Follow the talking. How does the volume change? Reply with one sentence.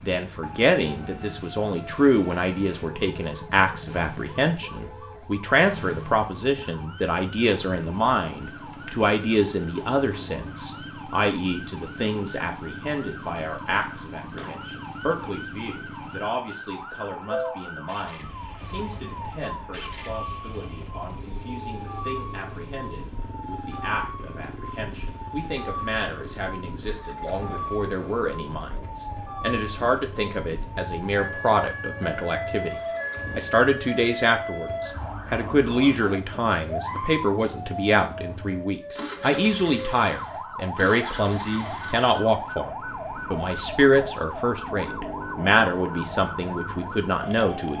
The volume of the talking goes down, then up.